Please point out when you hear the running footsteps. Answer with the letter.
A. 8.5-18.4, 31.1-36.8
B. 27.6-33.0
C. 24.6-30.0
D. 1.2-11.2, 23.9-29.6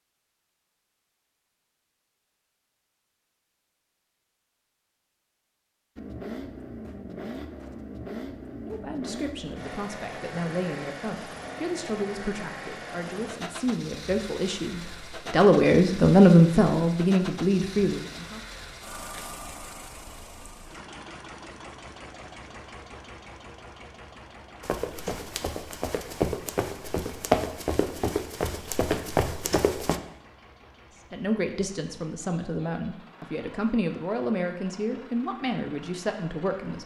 C.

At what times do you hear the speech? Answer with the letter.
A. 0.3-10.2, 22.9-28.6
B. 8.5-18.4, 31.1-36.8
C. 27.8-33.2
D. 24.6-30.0
B.